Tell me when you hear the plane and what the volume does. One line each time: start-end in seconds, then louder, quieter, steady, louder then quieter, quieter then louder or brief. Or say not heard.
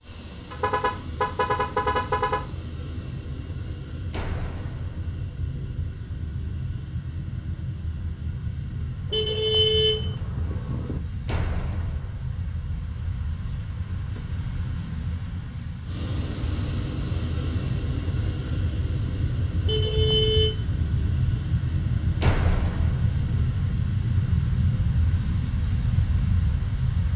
0.0-27.1 louder.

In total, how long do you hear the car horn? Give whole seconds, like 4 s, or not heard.
5 s.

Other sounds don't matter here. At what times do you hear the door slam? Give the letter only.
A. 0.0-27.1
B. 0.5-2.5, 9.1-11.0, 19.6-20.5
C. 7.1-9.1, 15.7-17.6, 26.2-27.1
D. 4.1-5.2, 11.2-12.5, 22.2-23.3
D.